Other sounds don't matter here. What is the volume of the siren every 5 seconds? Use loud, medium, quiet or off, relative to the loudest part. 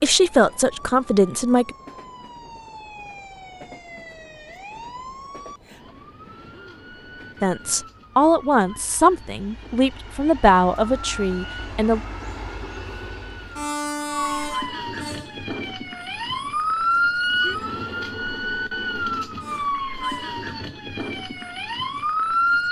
quiet, quiet, medium, loud, loud.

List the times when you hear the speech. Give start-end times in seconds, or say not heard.
0.0-1.8, 7.4-12.0.